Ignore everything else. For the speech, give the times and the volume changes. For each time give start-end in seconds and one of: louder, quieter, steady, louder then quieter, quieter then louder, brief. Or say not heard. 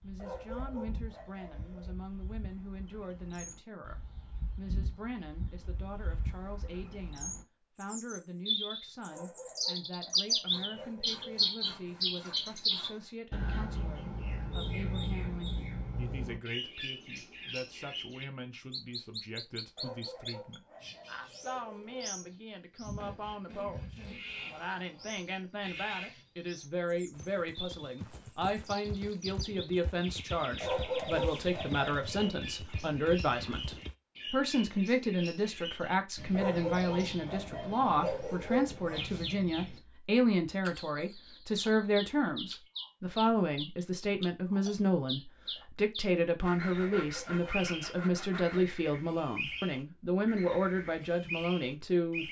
0.0-52.2 louder.